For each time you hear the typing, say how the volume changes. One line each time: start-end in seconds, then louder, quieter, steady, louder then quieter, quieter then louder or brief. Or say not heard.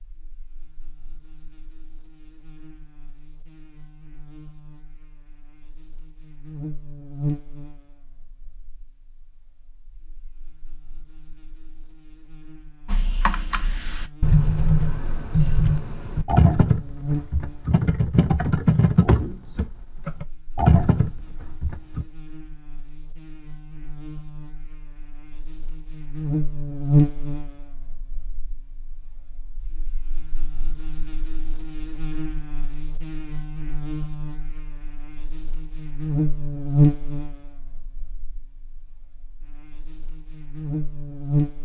12.8-22.1 steady.